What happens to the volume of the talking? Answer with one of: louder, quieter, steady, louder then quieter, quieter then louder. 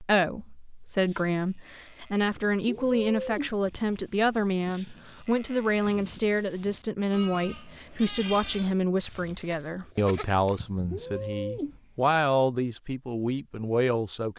steady.